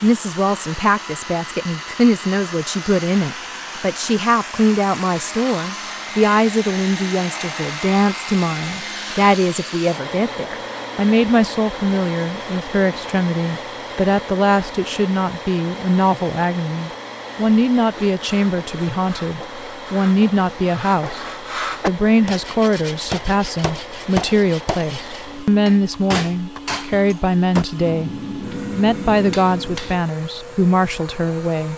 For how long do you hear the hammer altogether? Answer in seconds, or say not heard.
8 s.